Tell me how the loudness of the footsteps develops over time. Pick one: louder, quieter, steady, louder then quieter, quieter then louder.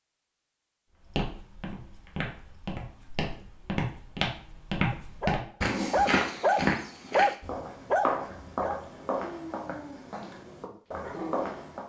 louder then quieter.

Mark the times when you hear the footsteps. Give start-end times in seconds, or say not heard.
1.1-11.8.